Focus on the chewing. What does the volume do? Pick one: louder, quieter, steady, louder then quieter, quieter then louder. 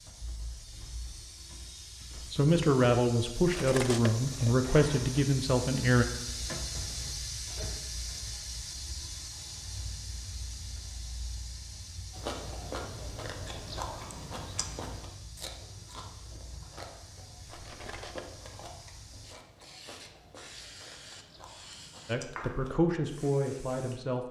quieter.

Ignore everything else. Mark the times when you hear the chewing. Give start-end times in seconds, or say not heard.
12.1-22.8.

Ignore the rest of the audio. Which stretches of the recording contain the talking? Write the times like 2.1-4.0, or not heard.
2.1-6.0, 22.1-24.2.